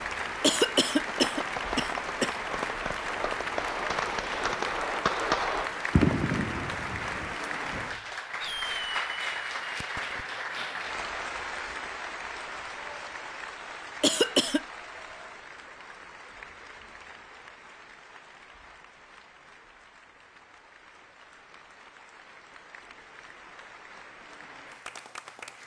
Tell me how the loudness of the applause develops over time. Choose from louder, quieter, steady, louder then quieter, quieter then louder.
quieter.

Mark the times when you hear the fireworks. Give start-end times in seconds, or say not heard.
1.0-10.2.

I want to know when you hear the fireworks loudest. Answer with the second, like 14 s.
6 s.